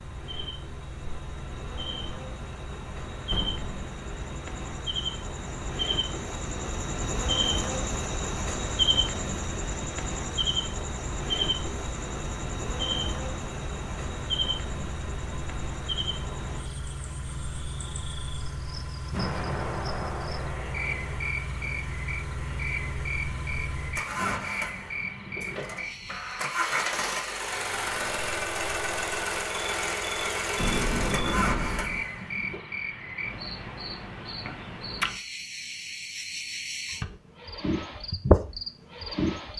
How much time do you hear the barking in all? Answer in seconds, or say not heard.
not heard.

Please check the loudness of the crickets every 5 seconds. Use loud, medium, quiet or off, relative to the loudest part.
medium, loud, loud, medium, medium, medium, medium, loud.